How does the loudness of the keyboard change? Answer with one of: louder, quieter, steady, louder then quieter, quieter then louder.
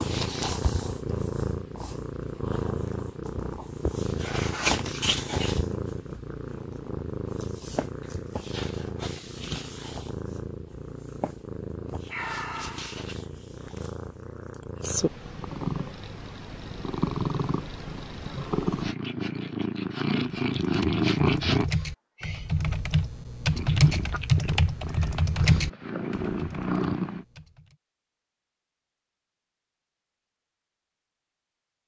louder then quieter.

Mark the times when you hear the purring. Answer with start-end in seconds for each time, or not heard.
0.0-21.6, 23.5-27.2.